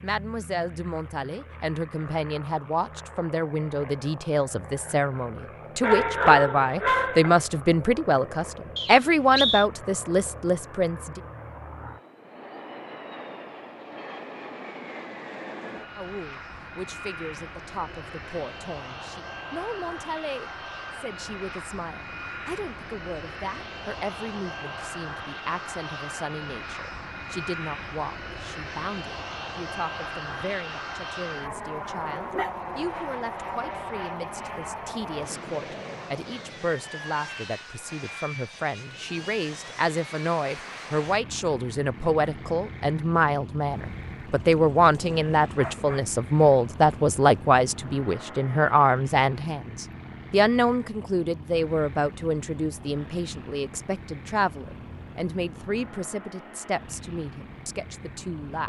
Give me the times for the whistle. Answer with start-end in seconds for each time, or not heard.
8.8-9.7.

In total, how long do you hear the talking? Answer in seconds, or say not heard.
54 s.